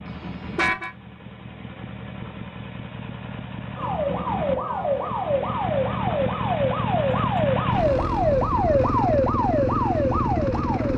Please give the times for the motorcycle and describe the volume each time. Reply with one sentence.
You can hear the motorcycle from 0.0 to 10.9 s, getting louder.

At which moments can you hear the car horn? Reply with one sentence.
You can hear the car horn from 0.1 to 0.9 s.